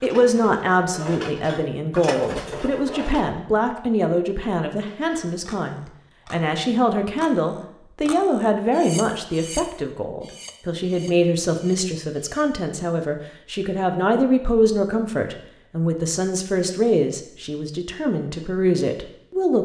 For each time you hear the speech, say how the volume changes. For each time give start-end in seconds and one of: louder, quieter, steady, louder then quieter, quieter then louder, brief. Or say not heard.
0.0-19.6 steady.